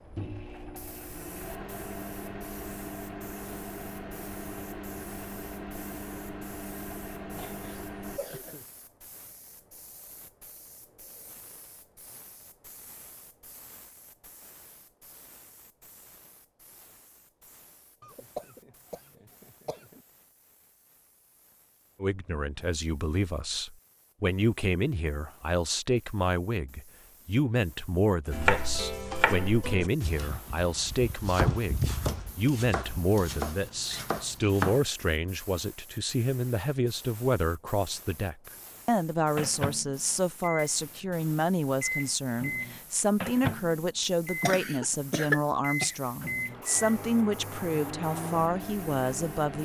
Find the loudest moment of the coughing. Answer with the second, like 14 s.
45 s.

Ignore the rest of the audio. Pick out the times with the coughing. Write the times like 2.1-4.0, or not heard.
7.3-8.7, 18.0-20.1, 44.4-46.0.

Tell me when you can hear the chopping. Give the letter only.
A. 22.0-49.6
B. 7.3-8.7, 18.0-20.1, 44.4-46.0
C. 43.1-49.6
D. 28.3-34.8
D.